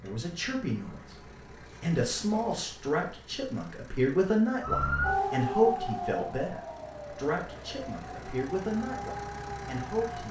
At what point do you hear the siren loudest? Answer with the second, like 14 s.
5 s.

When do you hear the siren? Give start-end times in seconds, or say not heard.
4.6-10.2.